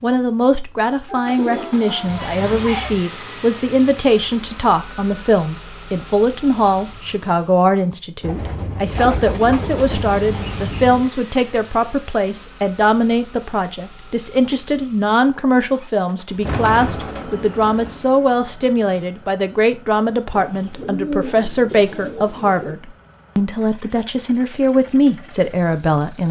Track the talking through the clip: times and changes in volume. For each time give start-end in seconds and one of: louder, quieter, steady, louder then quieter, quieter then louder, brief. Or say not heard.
0.0-26.2 steady.